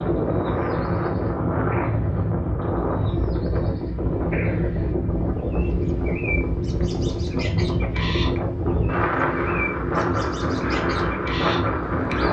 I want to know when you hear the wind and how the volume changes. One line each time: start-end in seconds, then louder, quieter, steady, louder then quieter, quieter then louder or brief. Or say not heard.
0.0-12.2 steady.